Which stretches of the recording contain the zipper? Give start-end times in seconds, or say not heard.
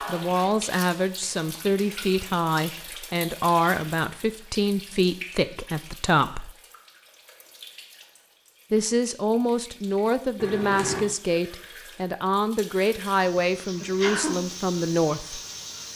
10.3-11.1.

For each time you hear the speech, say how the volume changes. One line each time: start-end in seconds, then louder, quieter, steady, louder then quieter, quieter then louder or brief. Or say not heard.
0.1-6.5 steady
8.7-15.4 steady.